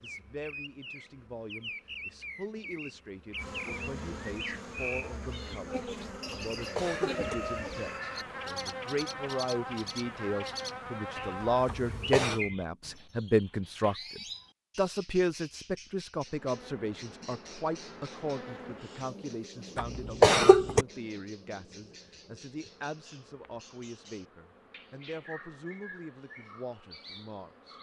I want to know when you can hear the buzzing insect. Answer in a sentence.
The buzzing insect can be heard from 0.0 to 12.5 s and from 16.2 to 27.7 s.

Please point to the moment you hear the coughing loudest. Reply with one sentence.
The loudest moment of the coughing is at 20 seconds.